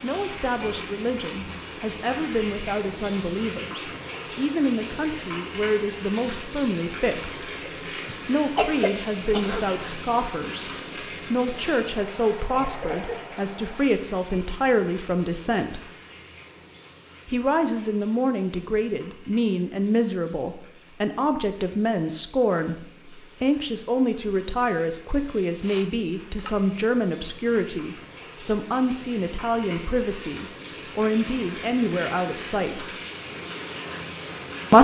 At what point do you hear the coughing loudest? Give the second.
9 s.